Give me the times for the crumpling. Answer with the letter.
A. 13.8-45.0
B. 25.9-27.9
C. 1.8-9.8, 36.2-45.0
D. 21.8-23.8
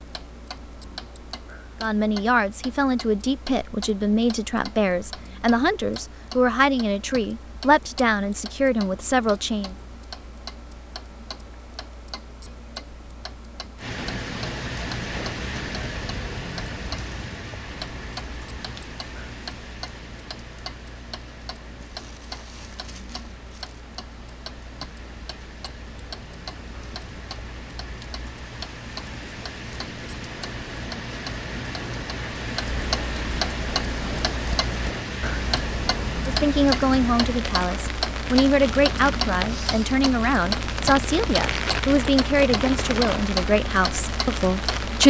D.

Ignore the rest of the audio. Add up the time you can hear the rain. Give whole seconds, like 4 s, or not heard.
31 s.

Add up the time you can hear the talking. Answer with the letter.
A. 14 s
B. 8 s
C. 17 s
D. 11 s
C.